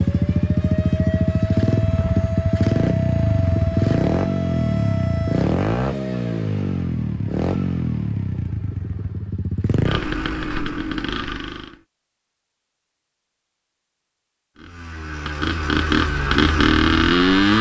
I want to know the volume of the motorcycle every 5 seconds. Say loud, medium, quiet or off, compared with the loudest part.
loud, medium, medium, loud.